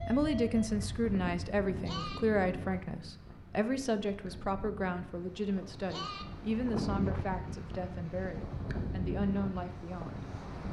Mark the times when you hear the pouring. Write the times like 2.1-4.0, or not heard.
not heard.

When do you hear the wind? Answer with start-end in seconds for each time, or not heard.
0.0-10.6.